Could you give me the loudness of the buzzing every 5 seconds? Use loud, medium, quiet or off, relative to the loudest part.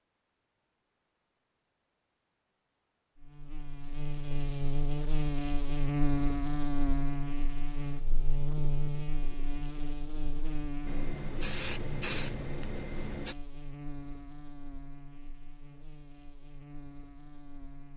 loud, loud, medium, quiet.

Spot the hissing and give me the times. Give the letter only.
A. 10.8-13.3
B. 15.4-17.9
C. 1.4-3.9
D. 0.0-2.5
A.